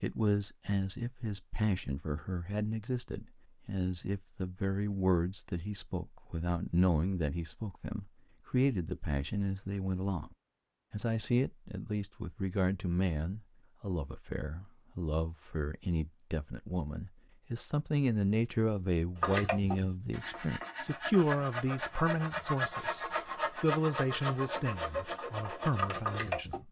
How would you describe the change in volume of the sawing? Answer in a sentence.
The loudness of the sawing goes up.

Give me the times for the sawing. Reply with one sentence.
You can hear the sawing from 19.1 to 26.6 s.